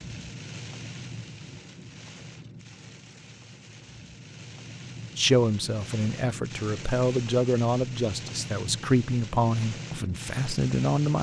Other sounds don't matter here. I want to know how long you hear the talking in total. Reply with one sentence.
You can hear the talking for 6 seconds altogether.